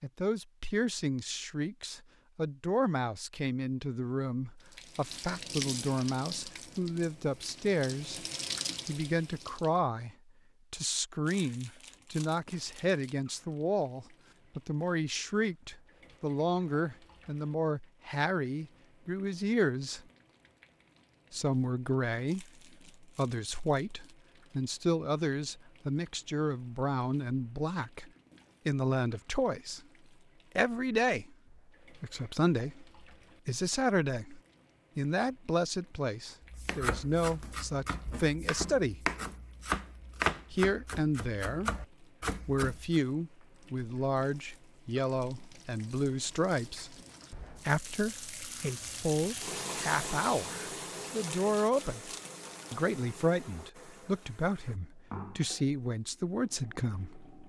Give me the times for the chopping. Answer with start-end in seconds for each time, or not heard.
36.4-43.0.